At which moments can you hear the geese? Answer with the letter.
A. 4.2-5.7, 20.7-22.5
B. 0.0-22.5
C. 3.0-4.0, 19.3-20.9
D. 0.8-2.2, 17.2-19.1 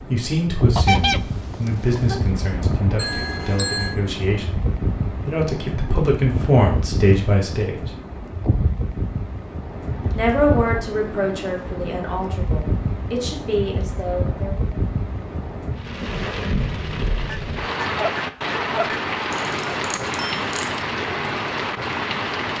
D.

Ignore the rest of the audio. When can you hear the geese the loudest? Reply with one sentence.
The loudest moment of the geese is at 1 second.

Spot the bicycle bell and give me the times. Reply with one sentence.
You can hear the bicycle bell from 3.0 to 4.0 s and from 19.3 to 20.9 s.